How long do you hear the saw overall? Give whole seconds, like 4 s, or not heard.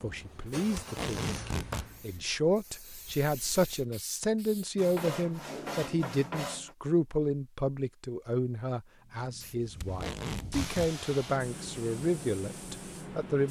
2 s.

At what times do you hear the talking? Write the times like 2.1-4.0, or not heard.
0.0-13.4.